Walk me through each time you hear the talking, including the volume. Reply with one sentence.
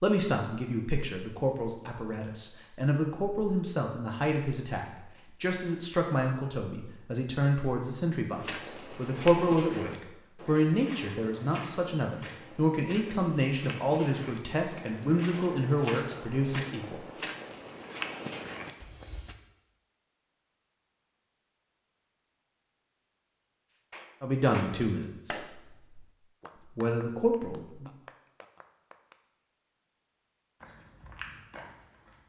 You can hear the talking from 0.0 to 17.1 s, at a steady volume; briefly from 24.2 to 25.4 s; and briefly from 26.8 to 27.9 s.